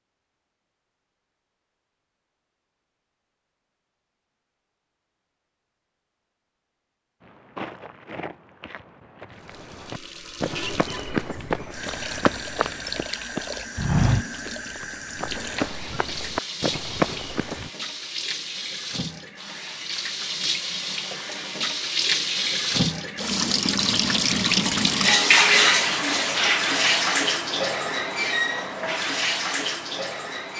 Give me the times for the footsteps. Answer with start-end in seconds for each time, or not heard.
7.2-17.7.